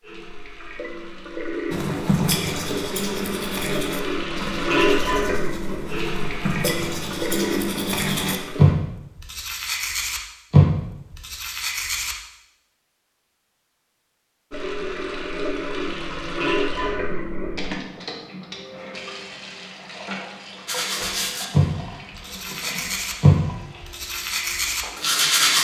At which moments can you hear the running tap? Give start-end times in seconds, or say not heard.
0.0-8.8, 14.5-25.5.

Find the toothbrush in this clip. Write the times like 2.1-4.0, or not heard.
1.7-12.2, 20.6-25.5.